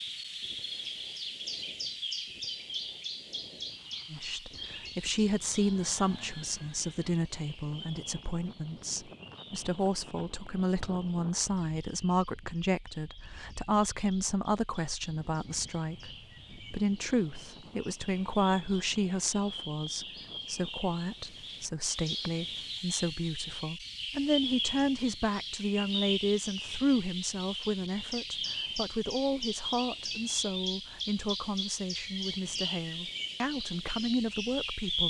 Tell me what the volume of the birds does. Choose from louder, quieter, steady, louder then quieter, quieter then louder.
quieter then louder.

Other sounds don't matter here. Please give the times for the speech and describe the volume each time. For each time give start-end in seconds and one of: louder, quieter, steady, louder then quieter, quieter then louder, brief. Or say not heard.
4.1-35.0 steady.